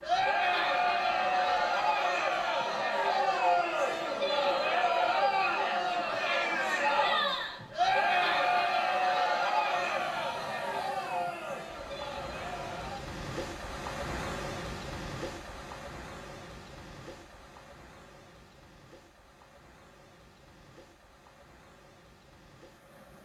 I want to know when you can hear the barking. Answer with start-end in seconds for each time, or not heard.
not heard.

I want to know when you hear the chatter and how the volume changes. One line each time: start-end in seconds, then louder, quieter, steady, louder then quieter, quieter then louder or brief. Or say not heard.
0.0-13.0 quieter.